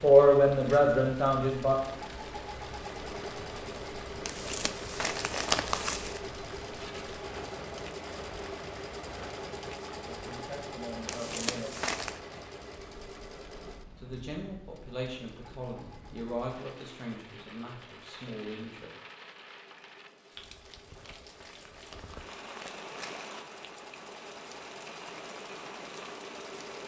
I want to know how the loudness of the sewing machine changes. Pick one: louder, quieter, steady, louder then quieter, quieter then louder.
quieter then louder.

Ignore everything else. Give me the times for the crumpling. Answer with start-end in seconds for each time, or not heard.
4.2-6.2, 11.1-12.2, 20.9-23.2.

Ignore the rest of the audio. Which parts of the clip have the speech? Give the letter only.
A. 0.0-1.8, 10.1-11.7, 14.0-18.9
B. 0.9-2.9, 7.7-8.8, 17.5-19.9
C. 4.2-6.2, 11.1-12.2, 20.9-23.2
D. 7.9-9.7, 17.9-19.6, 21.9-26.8
A.